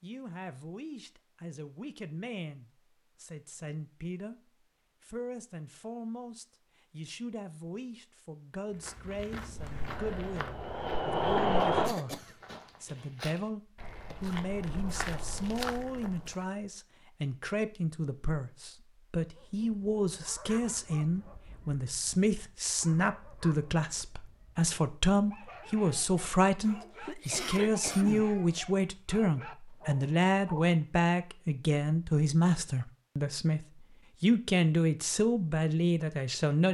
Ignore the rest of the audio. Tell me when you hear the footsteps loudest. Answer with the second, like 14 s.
16 s.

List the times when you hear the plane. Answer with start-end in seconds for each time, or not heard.
9.6-11.9.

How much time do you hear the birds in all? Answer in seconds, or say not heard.
not heard.